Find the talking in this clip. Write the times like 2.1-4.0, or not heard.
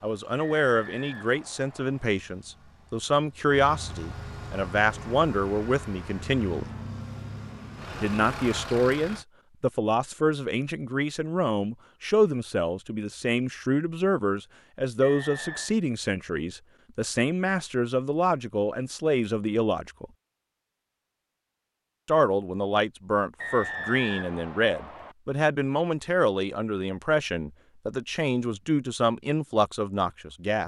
0.0-6.7, 8.0-20.1, 22.1-30.6.